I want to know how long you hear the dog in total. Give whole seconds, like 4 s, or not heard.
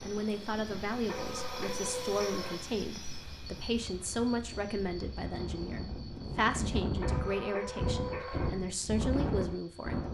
3 s.